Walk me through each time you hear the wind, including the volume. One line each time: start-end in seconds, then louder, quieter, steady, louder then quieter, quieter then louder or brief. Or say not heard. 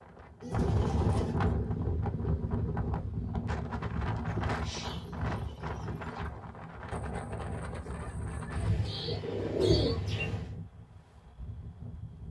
0.1-12.2 quieter.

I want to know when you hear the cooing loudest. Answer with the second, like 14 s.
10 s.